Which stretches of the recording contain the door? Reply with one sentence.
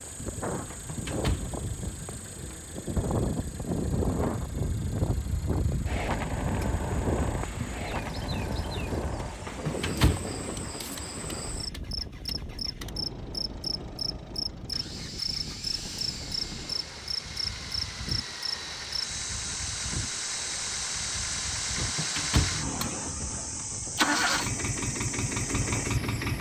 The door can be heard from 0.7 to 2.5 s, from 9.4 to 10.3 s and from 21.8 to 23.6 s.